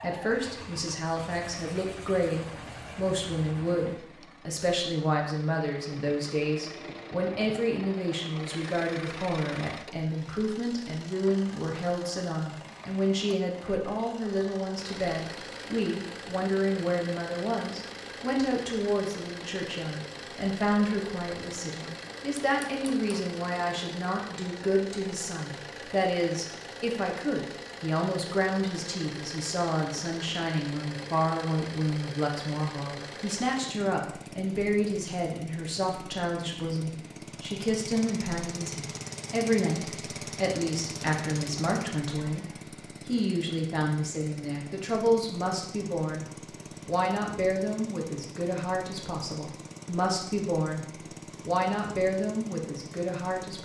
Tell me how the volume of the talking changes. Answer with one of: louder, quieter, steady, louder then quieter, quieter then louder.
steady.